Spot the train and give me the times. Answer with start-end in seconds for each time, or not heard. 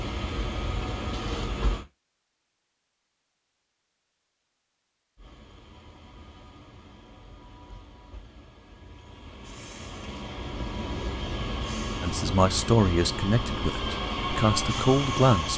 0.0-1.9, 5.2-15.5.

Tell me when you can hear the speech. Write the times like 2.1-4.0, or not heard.
12.0-15.5.